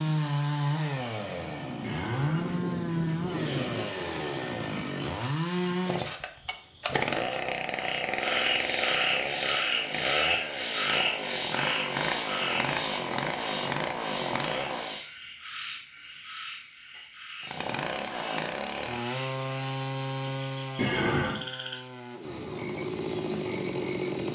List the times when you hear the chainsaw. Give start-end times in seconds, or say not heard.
0.0-15.0, 17.4-24.3.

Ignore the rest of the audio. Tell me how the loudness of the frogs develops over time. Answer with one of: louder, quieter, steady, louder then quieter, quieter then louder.
quieter.